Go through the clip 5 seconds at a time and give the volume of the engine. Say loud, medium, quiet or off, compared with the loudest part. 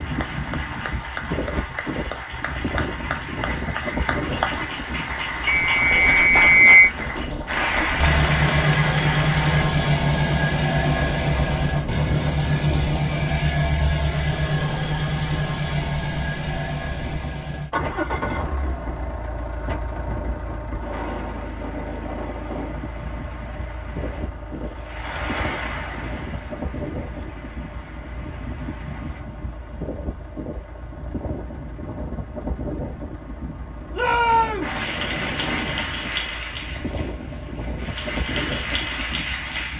off, loud, loud, medium, quiet, quiet, quiet, quiet.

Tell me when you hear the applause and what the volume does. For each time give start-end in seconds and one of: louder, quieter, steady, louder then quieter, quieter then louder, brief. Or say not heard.
0.0-9.7 louder
21.1-29.2 louder then quieter
34.6-39.7 quieter then louder.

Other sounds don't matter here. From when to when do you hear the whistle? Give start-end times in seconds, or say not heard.
5.5-6.9.